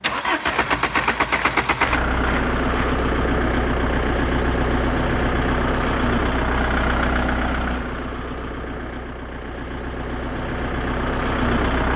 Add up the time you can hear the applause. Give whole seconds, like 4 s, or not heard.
3 s.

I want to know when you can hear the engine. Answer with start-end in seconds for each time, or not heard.
0.0-11.9.